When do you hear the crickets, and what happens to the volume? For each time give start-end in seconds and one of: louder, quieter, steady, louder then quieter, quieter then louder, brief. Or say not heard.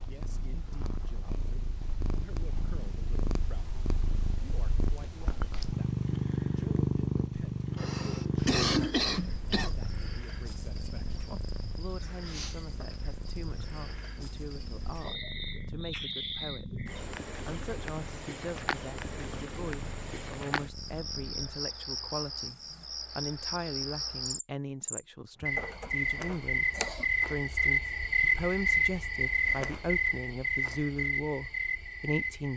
8.3-32.5 louder.